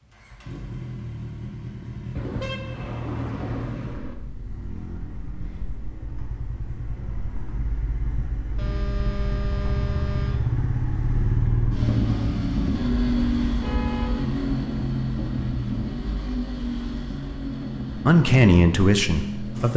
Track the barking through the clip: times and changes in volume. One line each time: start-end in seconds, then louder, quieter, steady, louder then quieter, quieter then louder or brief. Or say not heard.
not heard.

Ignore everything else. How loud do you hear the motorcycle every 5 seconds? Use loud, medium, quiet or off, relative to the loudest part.
medium, medium, loud, medium.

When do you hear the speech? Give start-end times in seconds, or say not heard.
17.9-19.7.